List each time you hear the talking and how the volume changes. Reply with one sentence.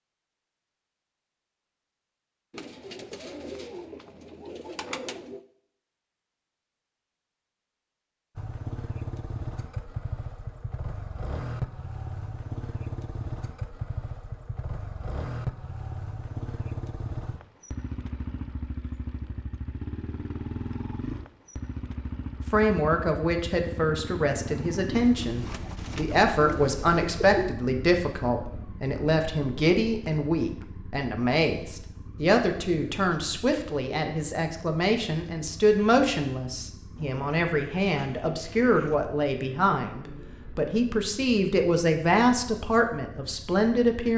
You can hear the talking from 22.5 to 44.1 s, at a steady volume.